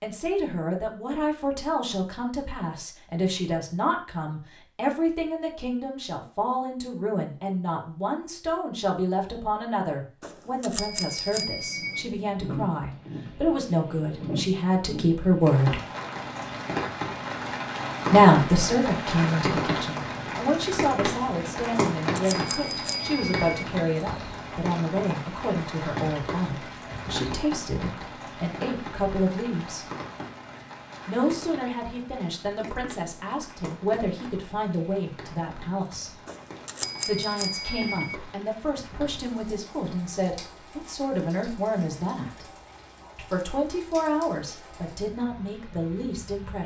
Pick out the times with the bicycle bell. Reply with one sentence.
The bicycle bell can be heard from 10.2 to 12.1 s, from 21.8 to 23.6 s and from 36.2 to 38.1 s.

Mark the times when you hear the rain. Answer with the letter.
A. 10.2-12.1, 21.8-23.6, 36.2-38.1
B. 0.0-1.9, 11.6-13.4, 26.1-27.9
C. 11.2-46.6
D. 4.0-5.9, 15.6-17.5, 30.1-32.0
C.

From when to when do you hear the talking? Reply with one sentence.
The talking can be heard from 0.0 to 15.8 s, from 18.1 to 29.9 s, from 31.1 to 36.1 s, from 37.0 to 42.5 s and from 43.1 to 46.6 s.